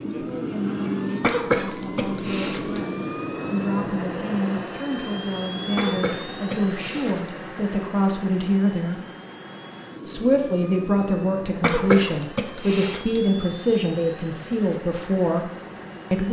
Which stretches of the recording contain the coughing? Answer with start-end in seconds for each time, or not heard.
1.2-2.8, 5.8-7.3, 11.6-13.2.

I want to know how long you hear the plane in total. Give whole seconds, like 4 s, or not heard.
16 s.